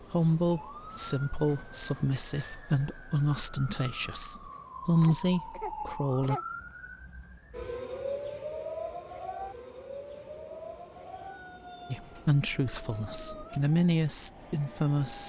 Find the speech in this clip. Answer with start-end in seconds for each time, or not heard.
0.1-6.4, 11.9-15.2.